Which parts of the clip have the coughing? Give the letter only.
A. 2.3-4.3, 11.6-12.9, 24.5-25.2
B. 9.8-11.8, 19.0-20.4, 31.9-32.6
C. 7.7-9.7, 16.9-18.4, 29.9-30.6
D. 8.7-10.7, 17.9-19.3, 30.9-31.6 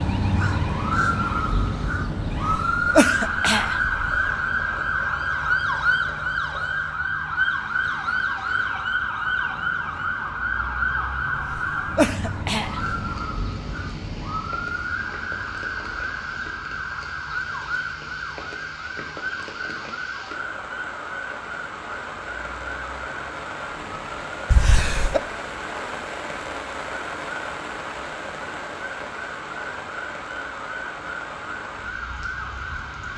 A.